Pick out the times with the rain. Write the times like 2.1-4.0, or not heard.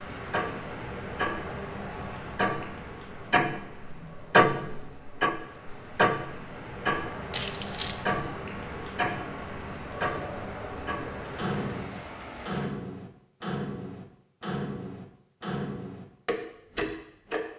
0.0-12.7.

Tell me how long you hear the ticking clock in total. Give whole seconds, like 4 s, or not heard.
17 s.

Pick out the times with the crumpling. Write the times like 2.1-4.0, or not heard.
7.3-8.0.